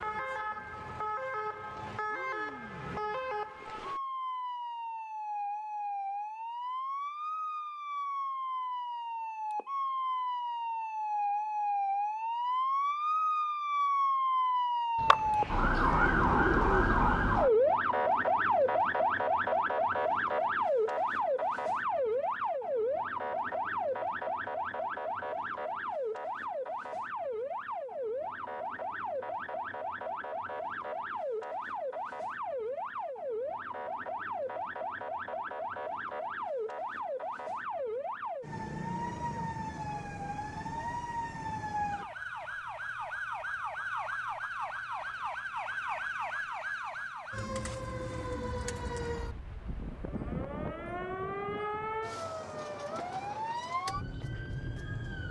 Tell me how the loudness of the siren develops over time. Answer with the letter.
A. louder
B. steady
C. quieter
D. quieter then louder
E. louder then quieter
E.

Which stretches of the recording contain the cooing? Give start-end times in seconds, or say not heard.
14.9-16.9, 47.4-49.1.